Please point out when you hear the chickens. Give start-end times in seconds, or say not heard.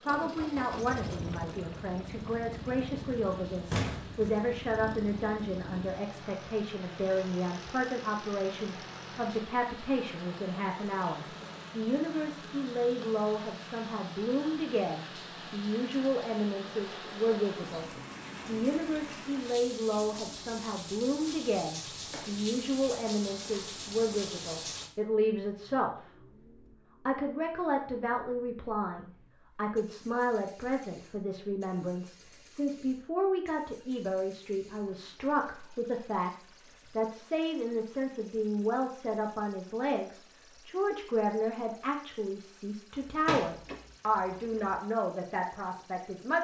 not heard.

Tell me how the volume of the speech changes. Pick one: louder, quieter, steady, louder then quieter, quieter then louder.
steady.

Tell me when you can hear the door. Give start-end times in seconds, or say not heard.
3.7-4.4, 43.0-44.8.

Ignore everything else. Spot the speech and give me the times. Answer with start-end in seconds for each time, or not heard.
0.1-26.1, 27.1-46.3.